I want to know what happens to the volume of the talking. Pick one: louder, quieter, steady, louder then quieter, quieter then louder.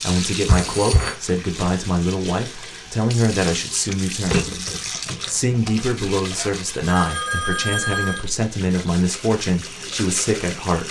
steady.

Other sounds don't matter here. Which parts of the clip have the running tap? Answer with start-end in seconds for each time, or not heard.
0.0-10.8.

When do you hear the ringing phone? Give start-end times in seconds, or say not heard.
0.5-1.1, 6.3-8.2.